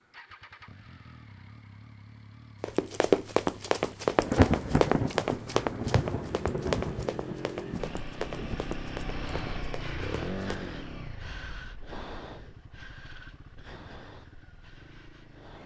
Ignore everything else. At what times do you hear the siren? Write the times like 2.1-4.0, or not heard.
not heard.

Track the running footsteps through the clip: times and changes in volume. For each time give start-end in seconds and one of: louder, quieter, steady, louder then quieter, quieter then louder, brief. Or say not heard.
2.6-10.7 quieter.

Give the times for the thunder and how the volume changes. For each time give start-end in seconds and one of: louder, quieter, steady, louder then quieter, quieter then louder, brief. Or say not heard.
4.2-8.7 quieter.